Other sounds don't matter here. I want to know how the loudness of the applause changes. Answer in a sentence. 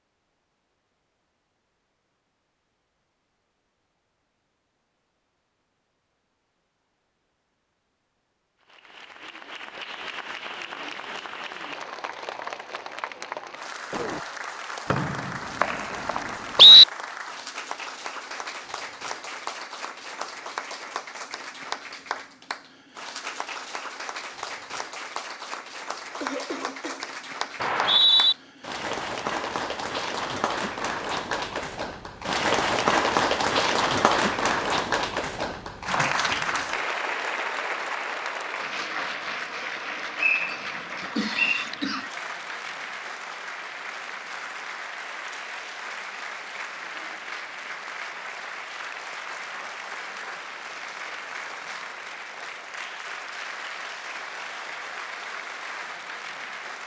The loudness of the applause goes up, then down.